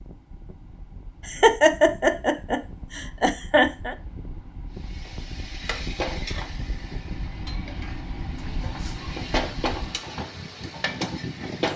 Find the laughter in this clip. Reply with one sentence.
The laughter can be heard from 1.2 to 4.0 s and from 8.3 to 9.2 s.